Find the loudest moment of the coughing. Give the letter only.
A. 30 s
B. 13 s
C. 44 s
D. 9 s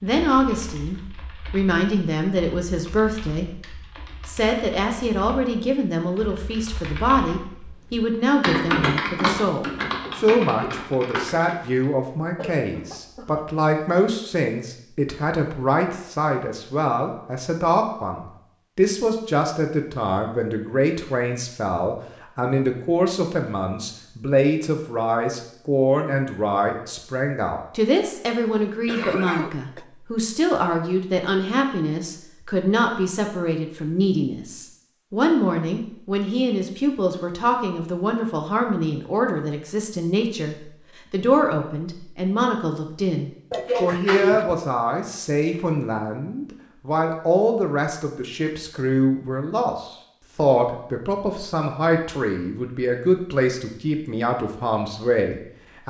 C.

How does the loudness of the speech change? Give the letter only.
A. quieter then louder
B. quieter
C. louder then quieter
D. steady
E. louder
D.